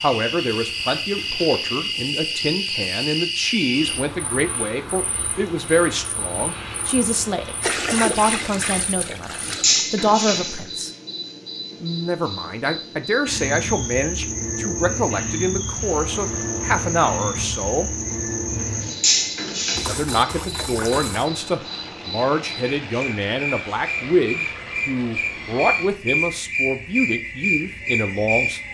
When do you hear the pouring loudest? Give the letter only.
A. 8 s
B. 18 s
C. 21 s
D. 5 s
A.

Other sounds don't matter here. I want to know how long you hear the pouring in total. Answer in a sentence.
The pouring can be heard for 4 seconds in total.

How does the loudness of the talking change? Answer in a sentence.
The volume of the talking stays about the same.